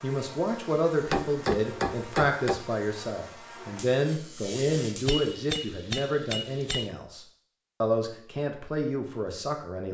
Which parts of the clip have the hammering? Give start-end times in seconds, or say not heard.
1.0-2.6, 5.0-6.9.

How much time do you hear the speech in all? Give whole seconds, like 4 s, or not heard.
10 s.